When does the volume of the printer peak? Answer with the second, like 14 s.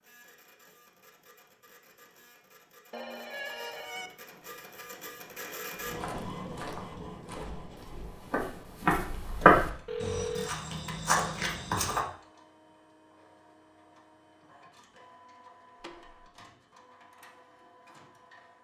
6 s.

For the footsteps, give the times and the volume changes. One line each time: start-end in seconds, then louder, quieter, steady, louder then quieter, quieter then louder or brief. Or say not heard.
5.8-12.1 louder then quieter.